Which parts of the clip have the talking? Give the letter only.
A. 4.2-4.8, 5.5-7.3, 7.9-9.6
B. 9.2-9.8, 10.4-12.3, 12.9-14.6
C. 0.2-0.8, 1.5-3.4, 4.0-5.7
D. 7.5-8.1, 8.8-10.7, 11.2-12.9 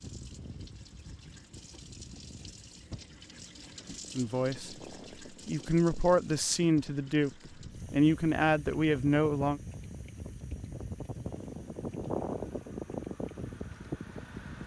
A.